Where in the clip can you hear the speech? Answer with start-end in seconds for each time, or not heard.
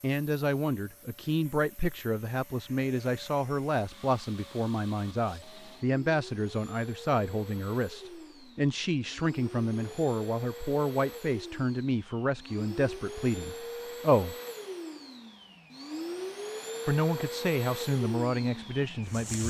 0.0-14.3, 16.9-19.4.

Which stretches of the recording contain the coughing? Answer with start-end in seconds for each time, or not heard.
not heard.